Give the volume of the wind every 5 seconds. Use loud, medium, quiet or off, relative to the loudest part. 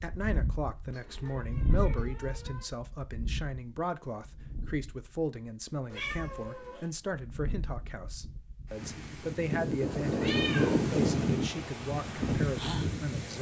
medium, medium, loud.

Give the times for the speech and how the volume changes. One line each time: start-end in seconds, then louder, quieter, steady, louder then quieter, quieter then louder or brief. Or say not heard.
0.0-13.3 steady.